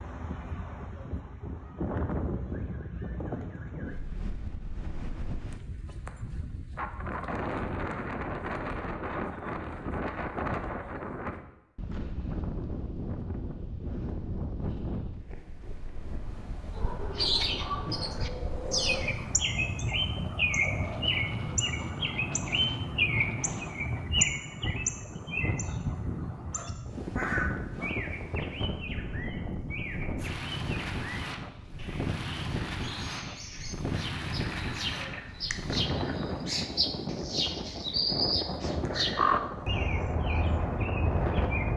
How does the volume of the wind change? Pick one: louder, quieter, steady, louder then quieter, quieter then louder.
steady.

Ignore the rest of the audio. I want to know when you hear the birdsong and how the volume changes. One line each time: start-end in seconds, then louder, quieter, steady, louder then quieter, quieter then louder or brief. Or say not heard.
16.8-41.7 quieter then louder.